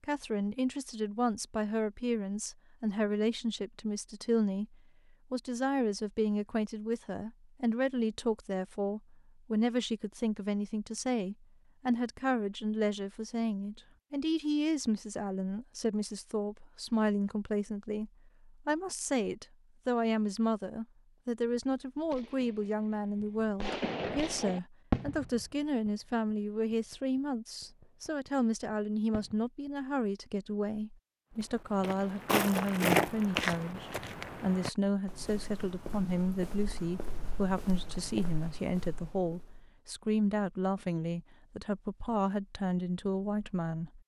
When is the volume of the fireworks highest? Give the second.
25 s.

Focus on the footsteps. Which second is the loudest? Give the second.
33 s.